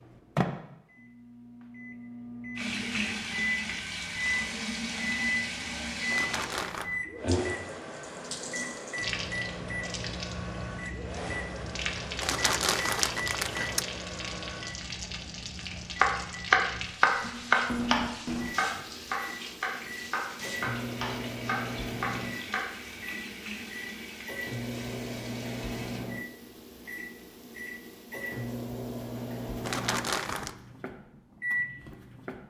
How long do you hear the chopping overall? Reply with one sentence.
The chopping can be heard for 7 seconds in total.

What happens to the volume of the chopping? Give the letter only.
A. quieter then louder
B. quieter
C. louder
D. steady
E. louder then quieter
B.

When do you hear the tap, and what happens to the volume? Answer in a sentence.
The tap can be heard from 2.5 to 26.1 s, getting quieter.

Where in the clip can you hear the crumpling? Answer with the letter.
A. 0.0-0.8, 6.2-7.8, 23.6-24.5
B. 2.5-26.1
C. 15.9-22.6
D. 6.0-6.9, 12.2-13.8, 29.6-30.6
D.